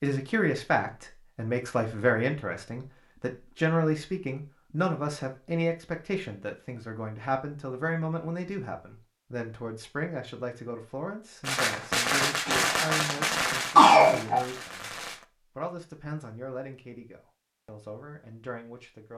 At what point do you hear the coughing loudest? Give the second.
14 s.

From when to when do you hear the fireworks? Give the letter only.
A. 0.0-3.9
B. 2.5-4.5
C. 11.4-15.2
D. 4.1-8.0
C.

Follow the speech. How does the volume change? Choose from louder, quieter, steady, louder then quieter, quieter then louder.
quieter.